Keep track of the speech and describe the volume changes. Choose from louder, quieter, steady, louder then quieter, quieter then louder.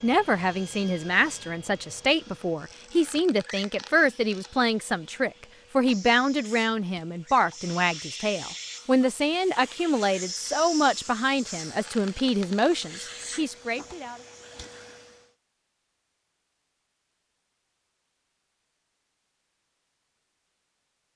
steady.